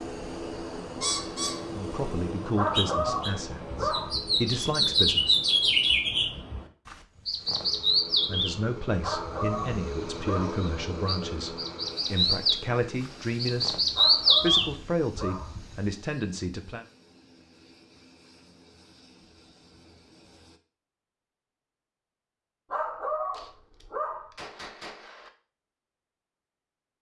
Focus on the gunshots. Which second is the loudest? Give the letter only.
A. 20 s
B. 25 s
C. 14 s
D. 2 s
B.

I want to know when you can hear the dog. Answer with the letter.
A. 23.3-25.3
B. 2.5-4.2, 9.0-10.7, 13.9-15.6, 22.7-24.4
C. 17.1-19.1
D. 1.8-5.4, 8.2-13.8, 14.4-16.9
B.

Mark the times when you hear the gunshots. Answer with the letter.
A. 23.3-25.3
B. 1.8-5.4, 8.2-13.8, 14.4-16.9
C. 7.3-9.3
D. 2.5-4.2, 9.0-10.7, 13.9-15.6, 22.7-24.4
A.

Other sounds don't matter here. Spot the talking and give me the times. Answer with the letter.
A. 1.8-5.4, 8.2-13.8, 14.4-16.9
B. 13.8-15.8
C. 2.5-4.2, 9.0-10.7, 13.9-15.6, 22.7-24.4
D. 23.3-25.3
A.